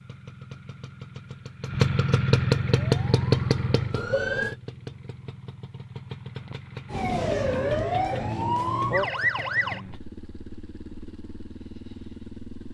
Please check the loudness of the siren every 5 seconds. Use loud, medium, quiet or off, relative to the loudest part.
medium, loud, off.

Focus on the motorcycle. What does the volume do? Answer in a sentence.
The loudness of the motorcycle goes down.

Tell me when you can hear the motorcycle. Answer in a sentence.
The motorcycle can be heard from 0.0 to 12.7 s.